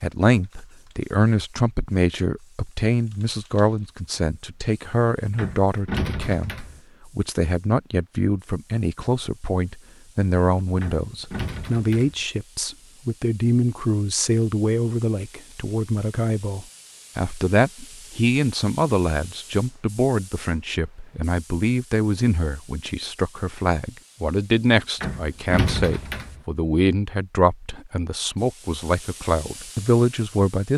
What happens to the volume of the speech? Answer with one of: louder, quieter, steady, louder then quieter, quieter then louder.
steady.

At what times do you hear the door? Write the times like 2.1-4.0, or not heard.
5.3-6.8, 10.8-12.2, 25.0-26.4.